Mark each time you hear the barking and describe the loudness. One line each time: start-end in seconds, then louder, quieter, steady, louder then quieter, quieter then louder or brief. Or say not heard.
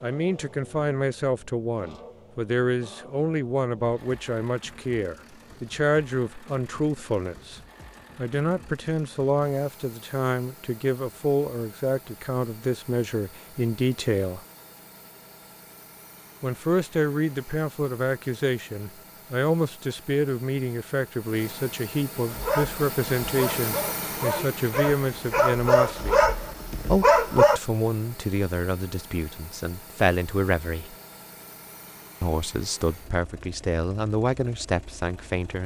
22.3-27.6 louder.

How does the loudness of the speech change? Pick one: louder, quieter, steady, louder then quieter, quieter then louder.
steady.